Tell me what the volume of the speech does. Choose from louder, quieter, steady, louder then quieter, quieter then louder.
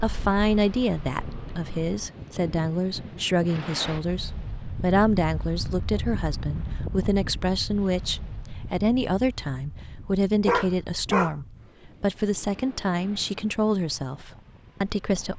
steady.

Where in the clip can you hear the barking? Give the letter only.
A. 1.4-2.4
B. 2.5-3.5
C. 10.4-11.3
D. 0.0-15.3
C.